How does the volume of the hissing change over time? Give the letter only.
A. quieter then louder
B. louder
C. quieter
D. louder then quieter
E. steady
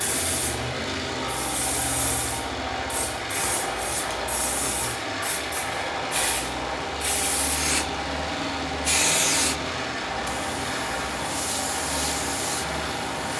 D.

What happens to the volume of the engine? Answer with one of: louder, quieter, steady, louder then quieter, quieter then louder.
steady.